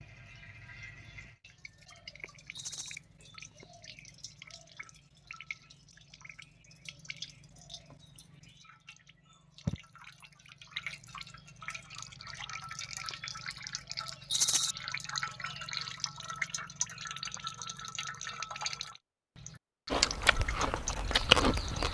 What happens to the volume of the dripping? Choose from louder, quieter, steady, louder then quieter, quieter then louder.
louder.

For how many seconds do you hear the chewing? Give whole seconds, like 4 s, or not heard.
2 s.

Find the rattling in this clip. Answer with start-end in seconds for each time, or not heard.
2.5-3.0, 14.3-14.8.